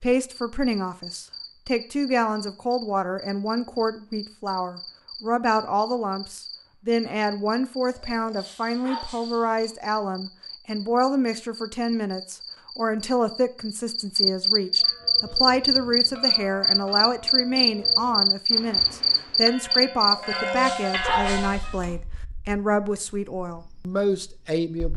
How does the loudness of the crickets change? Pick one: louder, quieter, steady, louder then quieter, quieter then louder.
louder then quieter.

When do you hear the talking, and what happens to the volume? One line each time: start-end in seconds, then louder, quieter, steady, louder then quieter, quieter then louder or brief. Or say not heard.
0.0-24.9 steady.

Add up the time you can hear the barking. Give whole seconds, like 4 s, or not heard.
4 s.